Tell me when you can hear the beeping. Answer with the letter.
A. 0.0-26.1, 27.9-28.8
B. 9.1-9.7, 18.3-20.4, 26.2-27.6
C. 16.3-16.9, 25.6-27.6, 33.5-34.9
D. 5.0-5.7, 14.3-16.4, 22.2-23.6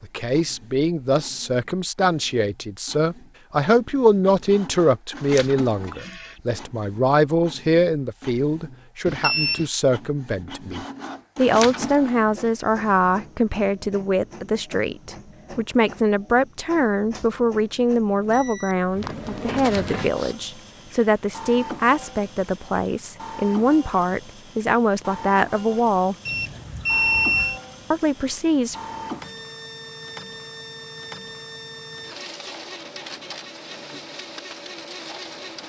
B.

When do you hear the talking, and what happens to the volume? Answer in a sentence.
You can hear the talking from 0.0 to 26.1 s, at a steady volume; and briefly from 27.9 to 28.8 s.